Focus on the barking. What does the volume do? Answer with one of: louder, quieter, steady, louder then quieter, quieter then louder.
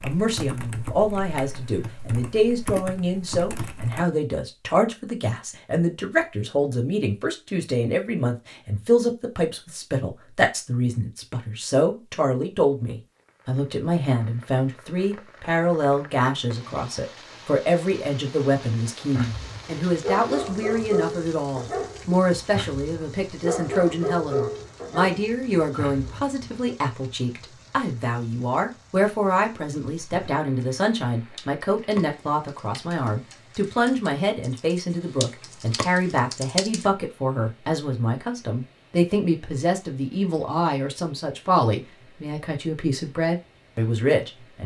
quieter.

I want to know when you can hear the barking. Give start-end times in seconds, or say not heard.
19.1-26.8.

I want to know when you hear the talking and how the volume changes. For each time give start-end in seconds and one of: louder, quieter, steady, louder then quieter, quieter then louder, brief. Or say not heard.
0.0-44.6 steady.